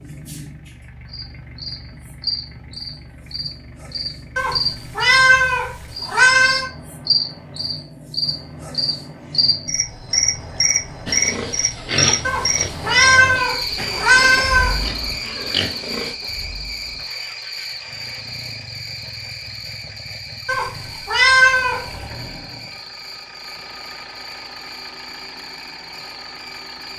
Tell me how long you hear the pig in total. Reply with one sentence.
You can hear the pig for 5 seconds altogether.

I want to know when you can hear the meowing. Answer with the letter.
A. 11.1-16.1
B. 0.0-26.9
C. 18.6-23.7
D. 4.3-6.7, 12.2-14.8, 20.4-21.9
D.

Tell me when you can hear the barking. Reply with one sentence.
The barking can't be heard in this clip.